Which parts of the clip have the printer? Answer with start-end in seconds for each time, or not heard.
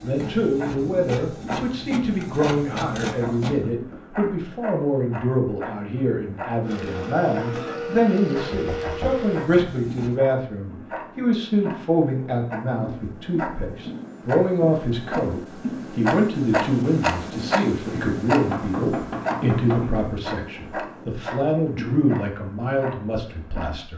0.0-3.8, 6.6-10.2.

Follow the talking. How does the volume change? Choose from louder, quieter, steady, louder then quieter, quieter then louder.
steady.